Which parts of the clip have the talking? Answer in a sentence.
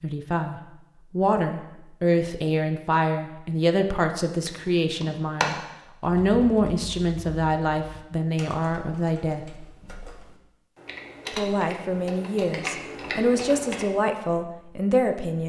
You can hear the talking from 0.0 to 9.4 s and from 11.3 to 15.4 s.